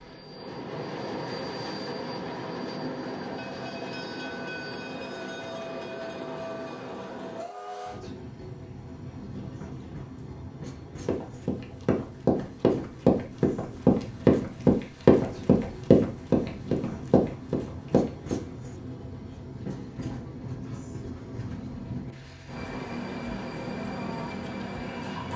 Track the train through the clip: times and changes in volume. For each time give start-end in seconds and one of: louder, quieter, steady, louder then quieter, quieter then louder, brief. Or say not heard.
0.0-25.3 quieter then louder.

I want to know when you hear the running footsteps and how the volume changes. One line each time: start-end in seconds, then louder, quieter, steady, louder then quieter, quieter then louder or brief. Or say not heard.
11.1-18.4 louder then quieter.